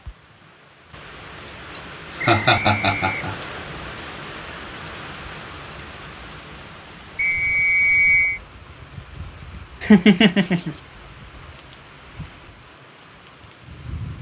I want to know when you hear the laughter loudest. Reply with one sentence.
The volume of the laughter peaks at 10 seconds.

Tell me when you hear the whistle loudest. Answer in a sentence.
The loudest moment of the whistle is at 8 seconds.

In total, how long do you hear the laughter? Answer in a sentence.
The laughter can be heard for 2 seconds in total.